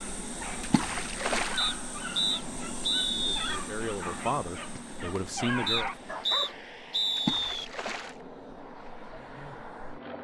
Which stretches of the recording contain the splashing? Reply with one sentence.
You can hear the splashing from 0.6 to 1.6 s and from 7.2 to 8.2 s.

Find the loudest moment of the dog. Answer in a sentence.
The loudest moment of the dog is at 6 seconds.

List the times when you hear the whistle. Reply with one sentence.
You can hear the whistle from 1.6 to 3.6 s and from 5.7 to 7.7 s.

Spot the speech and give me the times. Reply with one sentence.
You can hear the speech from 3.1 to 5.9 s.